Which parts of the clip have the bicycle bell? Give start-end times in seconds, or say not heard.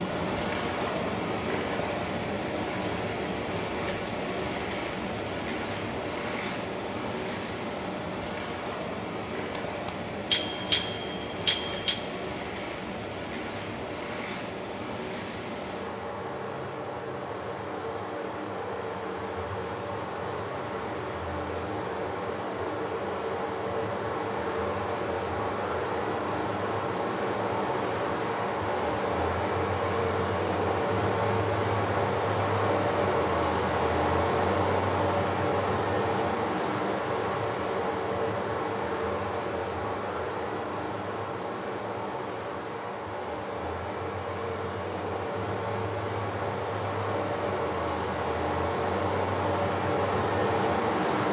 9.6-12.1.